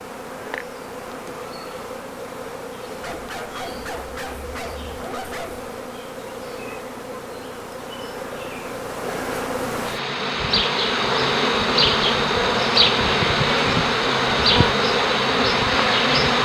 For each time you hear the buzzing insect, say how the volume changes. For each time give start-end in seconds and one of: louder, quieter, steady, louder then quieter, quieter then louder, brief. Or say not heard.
0.0-16.3 louder.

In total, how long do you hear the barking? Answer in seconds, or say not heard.
3 s.